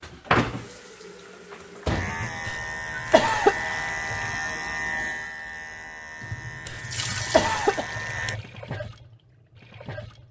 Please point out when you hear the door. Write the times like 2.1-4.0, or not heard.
1.9-2.3, 7.3-7.8.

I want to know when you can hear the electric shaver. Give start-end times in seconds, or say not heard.
1.9-8.4.